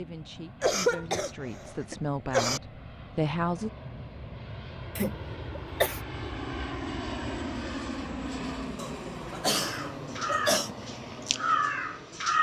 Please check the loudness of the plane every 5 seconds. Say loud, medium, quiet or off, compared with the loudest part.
medium, loud, medium.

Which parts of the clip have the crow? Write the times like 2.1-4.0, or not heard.
9.5-12.3.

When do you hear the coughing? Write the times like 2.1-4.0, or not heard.
0.6-2.6, 5.0-6.0, 8.8-10.7.